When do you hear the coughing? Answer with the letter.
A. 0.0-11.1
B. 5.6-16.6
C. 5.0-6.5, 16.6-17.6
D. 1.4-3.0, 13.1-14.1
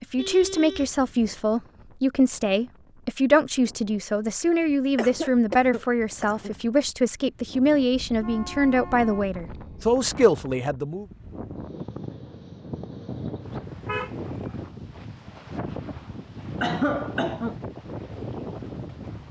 C.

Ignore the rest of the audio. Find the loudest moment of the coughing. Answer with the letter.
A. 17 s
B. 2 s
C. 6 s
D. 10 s
A.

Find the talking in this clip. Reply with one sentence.
The talking can be heard from 0.0 to 11.1 s.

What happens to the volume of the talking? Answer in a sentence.
The volume of the talking stays about the same.